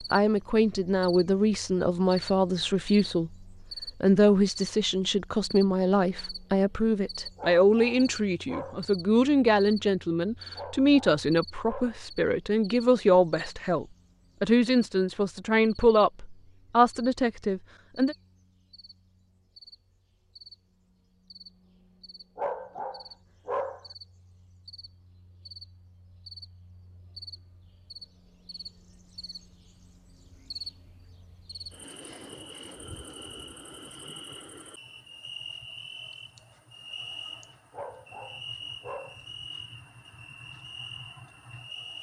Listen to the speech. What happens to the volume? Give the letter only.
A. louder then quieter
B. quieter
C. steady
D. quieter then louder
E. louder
C.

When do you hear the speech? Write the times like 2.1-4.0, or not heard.
0.1-3.3, 4.0-18.1.